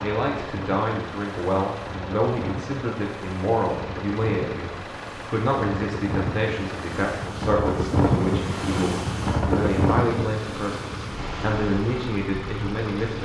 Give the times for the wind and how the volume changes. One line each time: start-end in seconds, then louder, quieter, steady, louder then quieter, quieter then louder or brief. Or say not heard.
0.0-13.2 louder then quieter.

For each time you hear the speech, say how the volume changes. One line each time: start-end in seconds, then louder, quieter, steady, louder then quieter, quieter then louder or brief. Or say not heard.
0.0-13.2 steady.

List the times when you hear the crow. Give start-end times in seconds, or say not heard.
not heard.